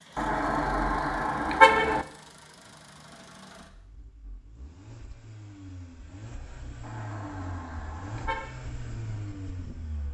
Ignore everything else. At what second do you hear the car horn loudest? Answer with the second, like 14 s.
2 s.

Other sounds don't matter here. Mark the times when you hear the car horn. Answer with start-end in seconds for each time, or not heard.
0.1-2.0, 6.8-8.5.